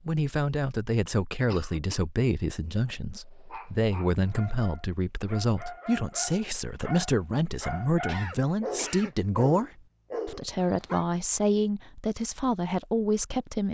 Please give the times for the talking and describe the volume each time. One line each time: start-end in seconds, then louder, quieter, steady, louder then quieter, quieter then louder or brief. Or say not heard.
0.1-13.6 steady.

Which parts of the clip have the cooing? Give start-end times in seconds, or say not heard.
not heard.